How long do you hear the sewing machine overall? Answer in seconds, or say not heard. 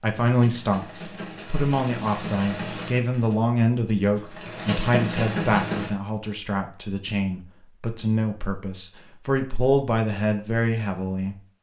6 s.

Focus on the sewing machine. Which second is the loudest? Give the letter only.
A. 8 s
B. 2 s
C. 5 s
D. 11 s
C.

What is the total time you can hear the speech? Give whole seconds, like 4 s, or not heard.
11 s.